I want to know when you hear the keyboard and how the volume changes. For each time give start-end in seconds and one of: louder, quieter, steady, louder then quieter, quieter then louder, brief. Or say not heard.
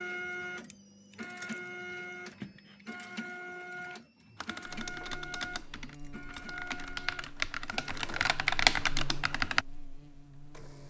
4.3-9.7 quieter then louder.